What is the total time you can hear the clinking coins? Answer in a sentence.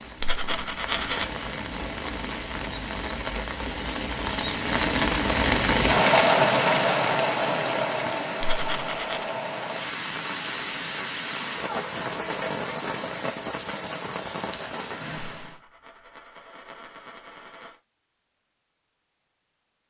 You can hear the clinking coins for 4 seconds altogether.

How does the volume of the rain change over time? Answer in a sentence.
The volume of the rain goes up, then down.